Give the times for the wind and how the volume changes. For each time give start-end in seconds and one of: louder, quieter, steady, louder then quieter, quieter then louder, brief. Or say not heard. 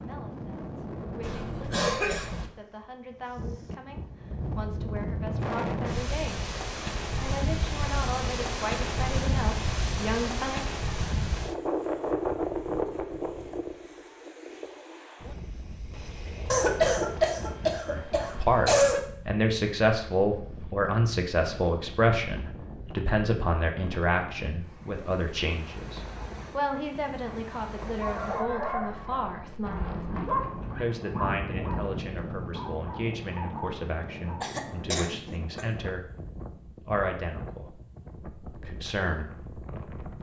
0.0-40.1 quieter.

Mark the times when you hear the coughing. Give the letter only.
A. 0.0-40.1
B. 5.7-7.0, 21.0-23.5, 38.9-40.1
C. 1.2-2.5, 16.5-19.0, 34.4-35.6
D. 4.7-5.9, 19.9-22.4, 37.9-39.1
C.